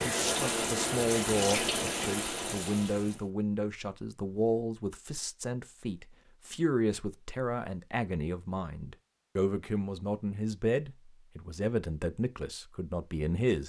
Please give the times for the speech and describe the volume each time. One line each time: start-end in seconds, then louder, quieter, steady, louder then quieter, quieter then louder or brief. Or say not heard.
0.1-13.6 steady.